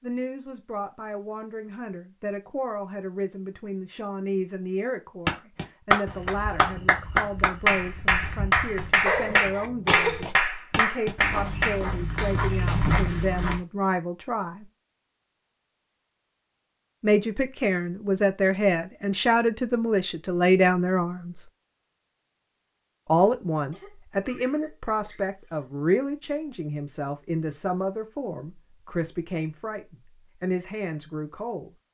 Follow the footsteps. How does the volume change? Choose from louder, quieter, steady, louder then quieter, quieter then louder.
louder.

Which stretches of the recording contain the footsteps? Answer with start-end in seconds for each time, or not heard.
5.2-13.6.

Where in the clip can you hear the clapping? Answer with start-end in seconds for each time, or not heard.
5.2-12.8.